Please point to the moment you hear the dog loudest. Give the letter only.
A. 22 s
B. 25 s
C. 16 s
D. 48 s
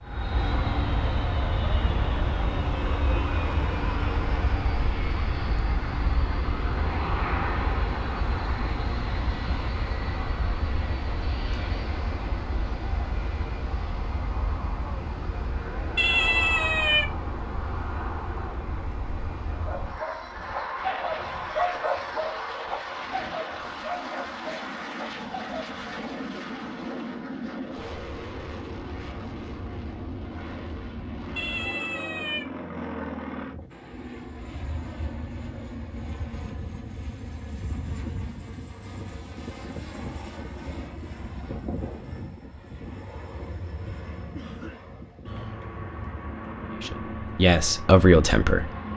A.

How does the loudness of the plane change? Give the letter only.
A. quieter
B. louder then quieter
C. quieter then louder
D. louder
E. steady
A.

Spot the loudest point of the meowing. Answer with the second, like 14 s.
16 s.